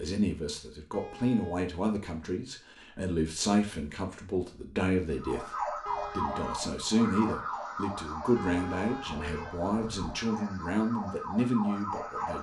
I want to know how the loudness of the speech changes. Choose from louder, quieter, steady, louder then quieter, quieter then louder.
steady.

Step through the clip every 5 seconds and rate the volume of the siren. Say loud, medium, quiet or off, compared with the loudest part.
off, loud, loud.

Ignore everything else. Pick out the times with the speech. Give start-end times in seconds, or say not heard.
0.0-12.3.